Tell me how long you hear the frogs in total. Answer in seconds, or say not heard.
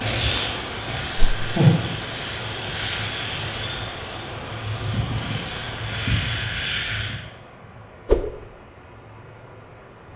7 s.